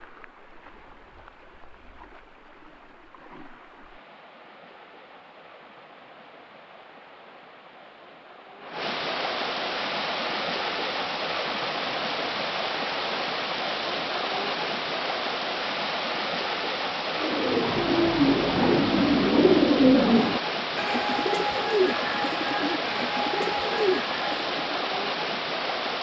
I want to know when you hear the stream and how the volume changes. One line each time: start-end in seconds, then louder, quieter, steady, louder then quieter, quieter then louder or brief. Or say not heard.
0.0-25.9 louder.